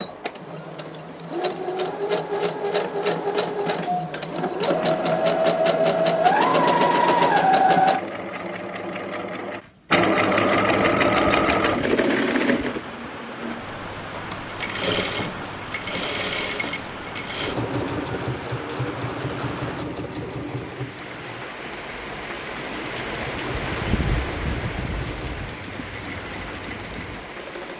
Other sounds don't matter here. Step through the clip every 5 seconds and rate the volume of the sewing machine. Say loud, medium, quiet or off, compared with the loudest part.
medium, loud, loud, medium, quiet, quiet.